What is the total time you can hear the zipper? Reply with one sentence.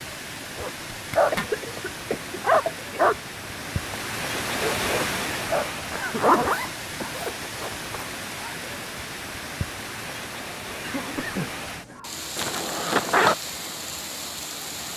You can hear the zipper for 4 seconds altogether.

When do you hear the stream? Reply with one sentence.
The stream can be heard from 0.0 to 14.9 s.